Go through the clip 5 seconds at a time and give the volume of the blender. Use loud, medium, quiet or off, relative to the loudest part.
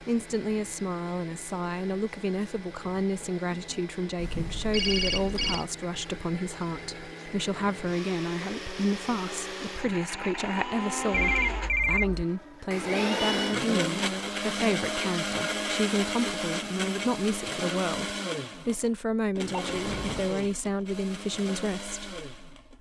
quiet, medium, loud, loud, medium.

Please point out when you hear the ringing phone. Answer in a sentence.
You can hear the ringing phone from 4.2 to 5.7 s, from 11.1 to 12.2 s and from 19.5 to 20.4 s.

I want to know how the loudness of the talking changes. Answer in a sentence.
The loudness of the talking stays about the same.